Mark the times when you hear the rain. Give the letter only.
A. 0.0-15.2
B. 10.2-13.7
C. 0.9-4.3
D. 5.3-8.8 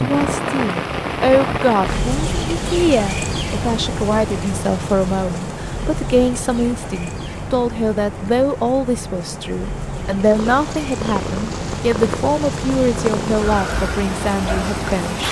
A.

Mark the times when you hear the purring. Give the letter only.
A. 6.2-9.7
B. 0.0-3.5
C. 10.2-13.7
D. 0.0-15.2
C.